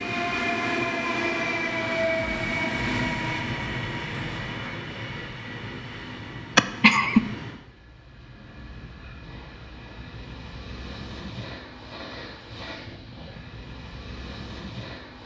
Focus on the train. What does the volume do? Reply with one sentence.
The loudness of the train goes down.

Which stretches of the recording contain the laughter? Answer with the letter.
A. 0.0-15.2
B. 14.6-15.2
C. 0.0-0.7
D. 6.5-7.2
D.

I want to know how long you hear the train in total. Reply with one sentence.
The train can be heard for 15 seconds in total.